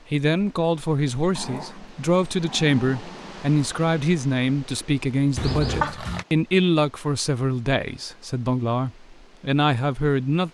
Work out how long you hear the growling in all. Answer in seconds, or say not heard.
3 s.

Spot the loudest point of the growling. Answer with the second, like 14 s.
6 s.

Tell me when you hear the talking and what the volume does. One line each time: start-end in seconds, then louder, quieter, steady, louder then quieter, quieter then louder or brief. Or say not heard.
0.1-10.4 steady.